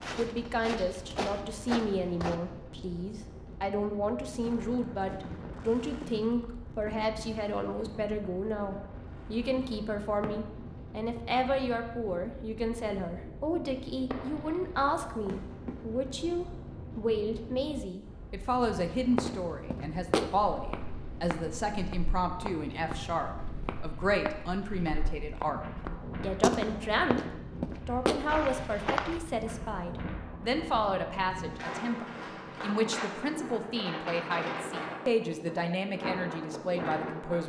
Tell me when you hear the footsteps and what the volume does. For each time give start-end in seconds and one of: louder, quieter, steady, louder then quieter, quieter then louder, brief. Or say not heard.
0.0-2.4 brief
18.9-29.2 quieter then louder.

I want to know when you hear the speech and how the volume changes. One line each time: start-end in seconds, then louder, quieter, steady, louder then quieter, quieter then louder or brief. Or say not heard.
0.1-37.4 steady.